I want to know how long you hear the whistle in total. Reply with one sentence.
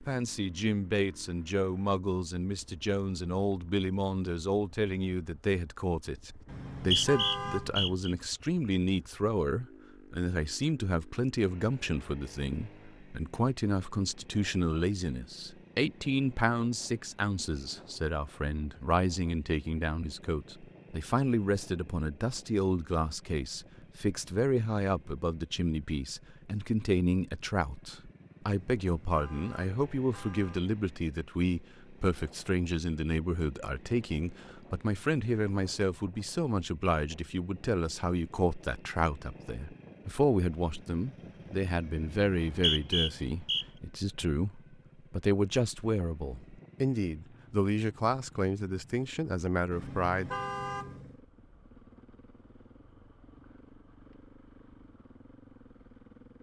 The whistle can be heard for 3 seconds in total.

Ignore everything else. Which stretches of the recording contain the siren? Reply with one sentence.
The siren can't be heard in this clip.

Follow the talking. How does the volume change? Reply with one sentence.
The volume of the talking stays about the same.